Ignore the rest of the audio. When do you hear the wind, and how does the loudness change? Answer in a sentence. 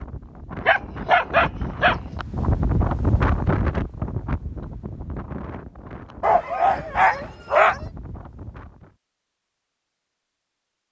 You can hear the wind from 0.0 to 8.9 s, getting louder then quieter.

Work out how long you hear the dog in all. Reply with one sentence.
You can hear the dog for 3 seconds altogether.